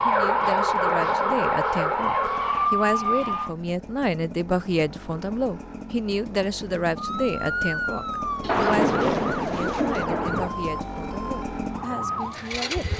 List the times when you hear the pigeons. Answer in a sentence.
You can hear the pigeons from 8.4 to 10.1 s.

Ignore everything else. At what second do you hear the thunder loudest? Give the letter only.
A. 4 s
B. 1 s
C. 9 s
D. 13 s
C.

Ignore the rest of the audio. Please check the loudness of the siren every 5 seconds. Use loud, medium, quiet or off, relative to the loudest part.
loud, medium, medium.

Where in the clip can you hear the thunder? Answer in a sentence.
The thunder can be heard from 8.4 to 10.5 s.